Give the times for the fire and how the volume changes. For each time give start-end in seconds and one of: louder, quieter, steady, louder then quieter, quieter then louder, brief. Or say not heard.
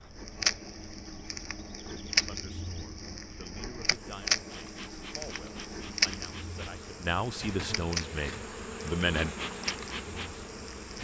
0.1-10.9 quieter.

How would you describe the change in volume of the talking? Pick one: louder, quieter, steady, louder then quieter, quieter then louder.
louder.